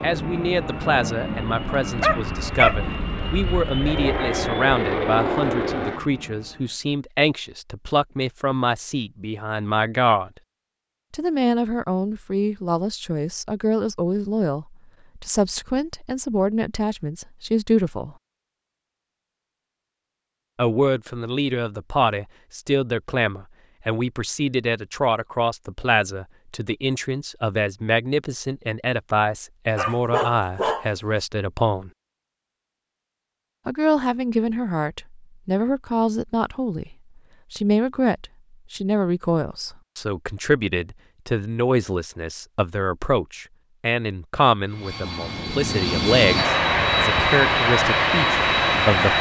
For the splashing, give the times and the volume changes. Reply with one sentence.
The splashing can't be heard in this clip.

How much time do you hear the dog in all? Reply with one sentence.
The dog can be heard for 2 seconds in total.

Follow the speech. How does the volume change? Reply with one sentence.
The loudness of the speech stays about the same.